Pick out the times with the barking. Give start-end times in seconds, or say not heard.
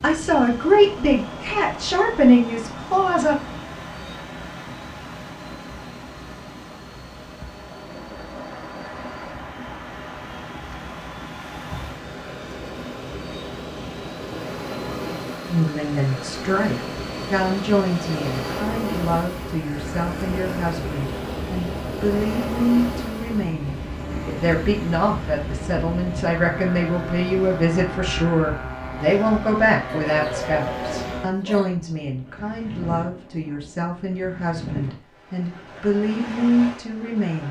29.9-31.8.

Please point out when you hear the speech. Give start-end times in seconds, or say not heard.
0.0-3.4, 15.5-37.4.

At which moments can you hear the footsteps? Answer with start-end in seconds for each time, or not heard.
not heard.